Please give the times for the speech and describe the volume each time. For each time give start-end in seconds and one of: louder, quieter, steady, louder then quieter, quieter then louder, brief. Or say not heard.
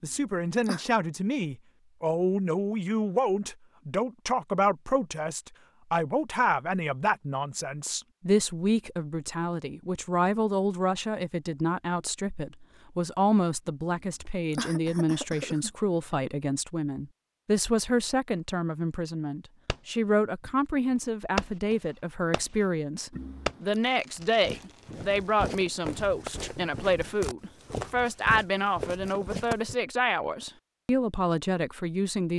0.0-32.3 steady.